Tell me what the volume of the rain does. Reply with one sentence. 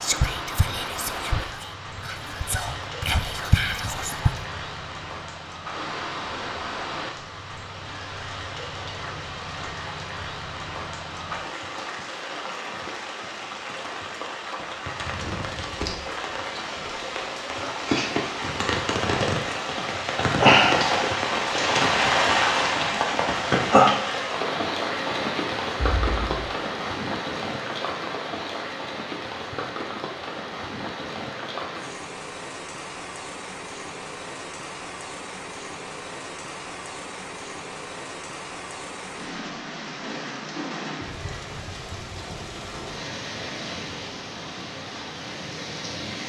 The loudness of the rain goes up, then down.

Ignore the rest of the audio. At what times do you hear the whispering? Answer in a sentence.
The whispering can be heard from 0.0 to 4.4 s.